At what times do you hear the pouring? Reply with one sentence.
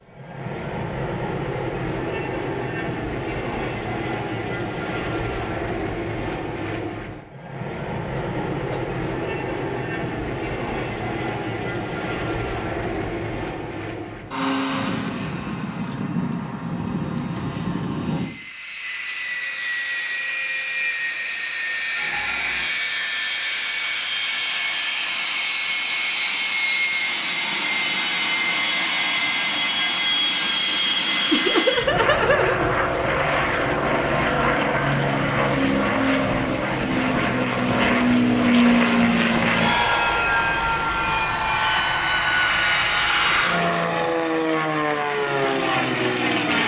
You can hear the pouring from 21.9 to 22.7 s.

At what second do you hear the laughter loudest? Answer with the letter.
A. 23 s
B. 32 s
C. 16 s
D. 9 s
B.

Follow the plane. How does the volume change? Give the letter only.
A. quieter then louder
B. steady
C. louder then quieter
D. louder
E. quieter
D.